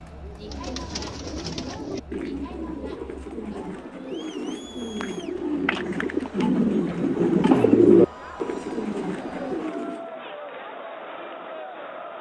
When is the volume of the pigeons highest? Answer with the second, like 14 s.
8 s.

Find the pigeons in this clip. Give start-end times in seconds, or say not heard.
0.3-10.2.